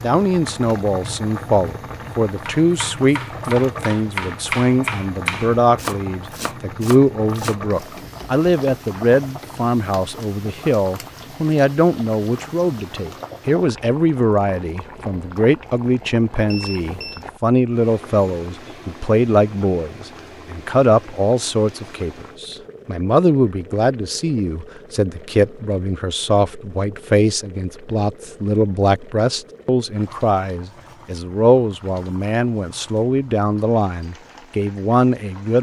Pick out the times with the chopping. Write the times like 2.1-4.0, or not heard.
2.4-9.5.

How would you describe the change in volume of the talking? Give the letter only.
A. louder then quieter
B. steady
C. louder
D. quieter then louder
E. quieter
B.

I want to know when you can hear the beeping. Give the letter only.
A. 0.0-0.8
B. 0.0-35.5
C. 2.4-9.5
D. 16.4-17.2
D.